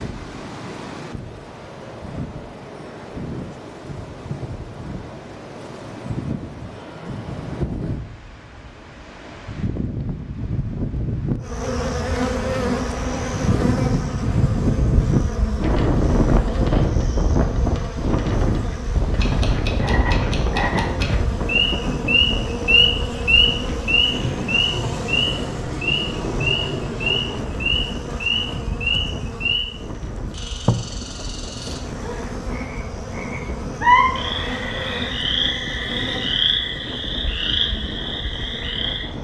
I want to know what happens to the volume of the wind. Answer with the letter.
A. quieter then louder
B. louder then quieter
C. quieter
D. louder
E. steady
B.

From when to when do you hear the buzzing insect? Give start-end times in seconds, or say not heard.
11.4-39.1.